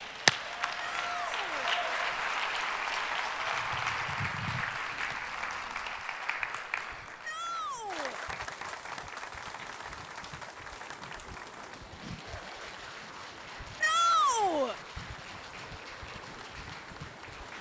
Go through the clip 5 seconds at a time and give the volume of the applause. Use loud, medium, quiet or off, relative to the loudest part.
loud, medium, quiet, quiet.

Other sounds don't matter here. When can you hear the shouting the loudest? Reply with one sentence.
The loudest moment of the shouting is at 14 seconds.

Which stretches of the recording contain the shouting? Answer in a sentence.
The shouting can be heard from 0.8 to 1.8 s, from 7.2 to 8.2 s and from 13.8 to 14.8 s.